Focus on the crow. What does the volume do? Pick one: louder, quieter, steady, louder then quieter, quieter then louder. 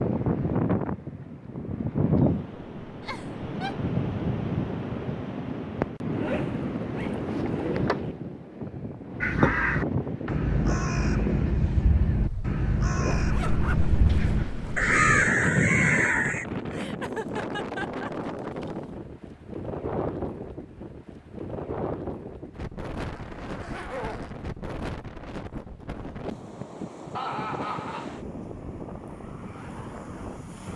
louder.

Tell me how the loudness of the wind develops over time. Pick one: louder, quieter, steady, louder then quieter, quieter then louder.
quieter.